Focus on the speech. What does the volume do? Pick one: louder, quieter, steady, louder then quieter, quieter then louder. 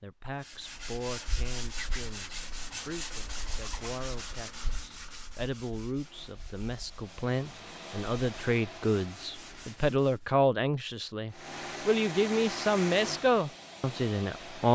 louder.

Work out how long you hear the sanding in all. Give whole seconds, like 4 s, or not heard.
10 s.